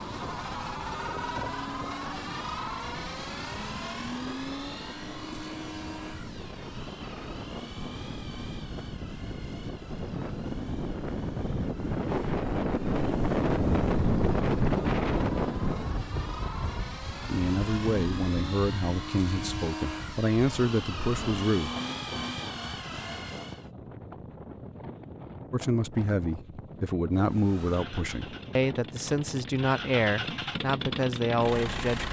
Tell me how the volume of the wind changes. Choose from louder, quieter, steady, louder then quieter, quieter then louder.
louder then quieter.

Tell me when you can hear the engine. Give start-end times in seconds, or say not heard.
0.0-23.7, 27.1-32.0.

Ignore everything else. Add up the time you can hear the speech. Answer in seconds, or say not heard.
11 s.